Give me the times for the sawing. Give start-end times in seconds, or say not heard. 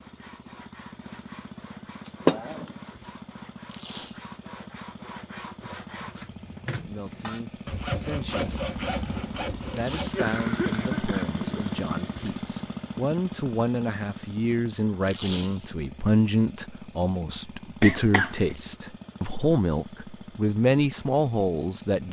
0.0-10.2.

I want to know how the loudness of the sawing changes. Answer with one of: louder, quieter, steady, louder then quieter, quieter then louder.
louder.